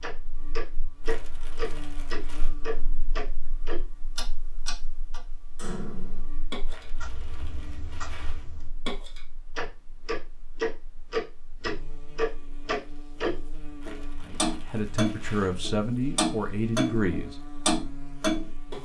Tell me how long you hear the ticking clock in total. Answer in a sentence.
The ticking clock can be heard for 19 seconds in total.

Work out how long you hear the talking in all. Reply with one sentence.
The talking can be heard for 3 seconds in total.